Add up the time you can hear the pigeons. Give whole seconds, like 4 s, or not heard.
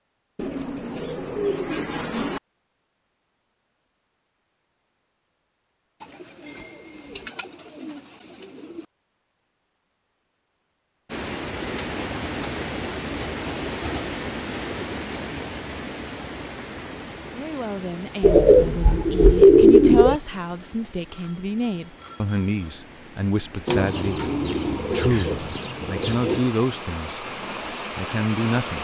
12 s.